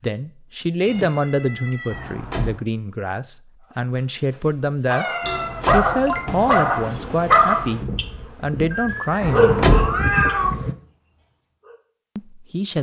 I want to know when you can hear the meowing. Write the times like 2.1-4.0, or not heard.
0.8-2.1, 4.8-6.5, 8.7-10.5.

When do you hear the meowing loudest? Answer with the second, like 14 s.
10 s.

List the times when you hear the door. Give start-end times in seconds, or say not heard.
1.9-2.6, 5.2-6.5, 9.2-9.9.